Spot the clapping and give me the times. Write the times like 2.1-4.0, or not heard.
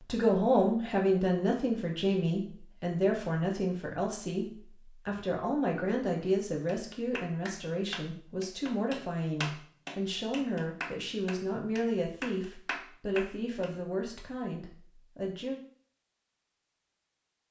6.7-13.7.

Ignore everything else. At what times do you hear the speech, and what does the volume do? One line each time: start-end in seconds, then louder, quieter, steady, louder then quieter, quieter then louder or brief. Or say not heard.
0.0-15.6 quieter.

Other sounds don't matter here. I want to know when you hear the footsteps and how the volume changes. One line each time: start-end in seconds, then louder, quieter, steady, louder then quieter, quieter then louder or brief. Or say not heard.
not heard.